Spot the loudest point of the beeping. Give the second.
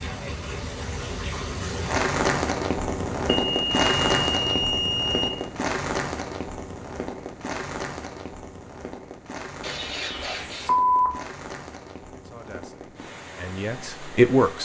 11 s.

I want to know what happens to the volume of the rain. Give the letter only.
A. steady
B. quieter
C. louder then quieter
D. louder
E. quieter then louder
B.